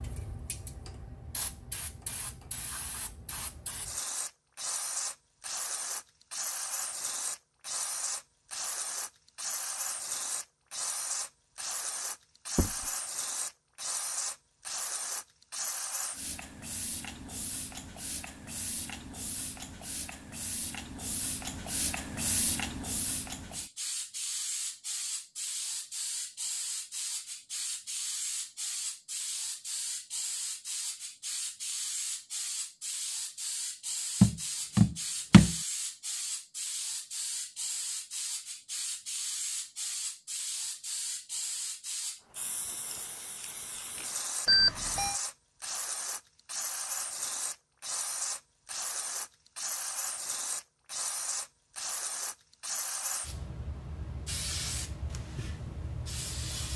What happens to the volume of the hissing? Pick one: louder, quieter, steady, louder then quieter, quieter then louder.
steady.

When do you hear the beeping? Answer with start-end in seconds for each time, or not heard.
44.5-45.1.